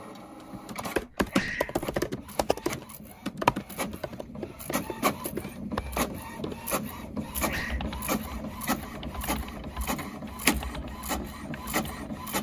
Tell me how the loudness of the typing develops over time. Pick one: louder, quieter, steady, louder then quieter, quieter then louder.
quieter.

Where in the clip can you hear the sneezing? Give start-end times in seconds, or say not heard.
1.1-2.4, 7.3-7.8.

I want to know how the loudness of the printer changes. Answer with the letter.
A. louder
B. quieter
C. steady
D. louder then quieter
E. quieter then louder
A.